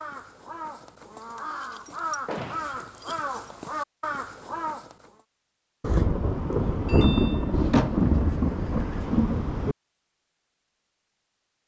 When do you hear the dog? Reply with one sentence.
The dog can't be heard in this clip.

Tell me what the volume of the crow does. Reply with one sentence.
The volume of the crow goes up.